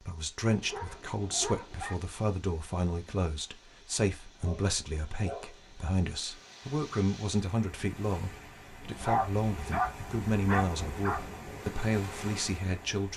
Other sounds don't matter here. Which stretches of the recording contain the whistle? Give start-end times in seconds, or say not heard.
not heard.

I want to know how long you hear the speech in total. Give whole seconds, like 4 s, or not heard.
13 s.